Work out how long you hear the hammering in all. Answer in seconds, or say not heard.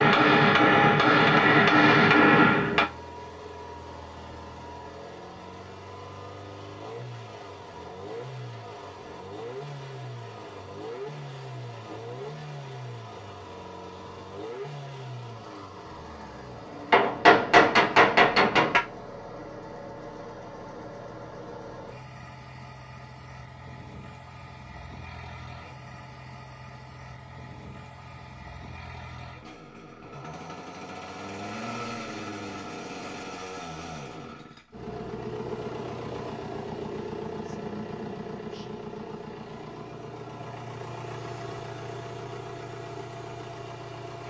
5 s.